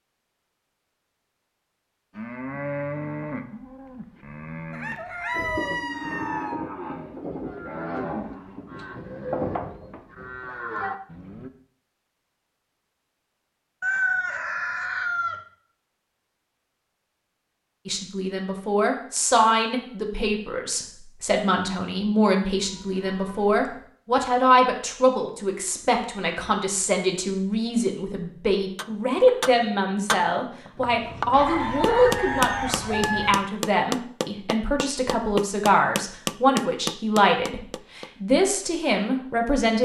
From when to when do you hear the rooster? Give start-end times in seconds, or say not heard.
4.7-6.5, 13.8-15.4, 31.3-33.4.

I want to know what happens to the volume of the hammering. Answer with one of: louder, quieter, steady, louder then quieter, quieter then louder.
steady.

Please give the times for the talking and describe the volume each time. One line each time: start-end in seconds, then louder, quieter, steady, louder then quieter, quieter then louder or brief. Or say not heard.
17.9-39.8 steady.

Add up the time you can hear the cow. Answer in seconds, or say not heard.
9 s.